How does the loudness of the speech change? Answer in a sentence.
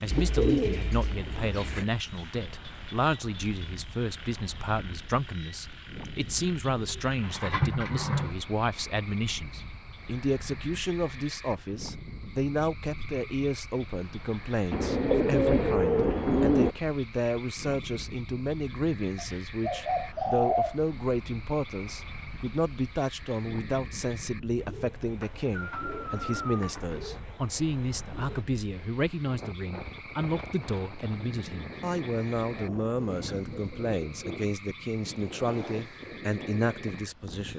The volume of the speech stays about the same.